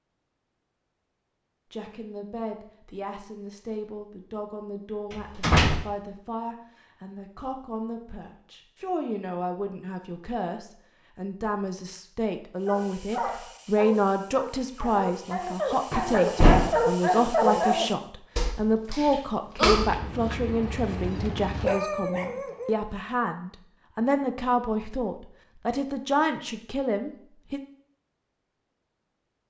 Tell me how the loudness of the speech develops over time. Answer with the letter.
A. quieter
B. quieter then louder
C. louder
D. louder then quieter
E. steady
C.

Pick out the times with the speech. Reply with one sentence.
The speech can be heard from 1.7 to 27.6 s.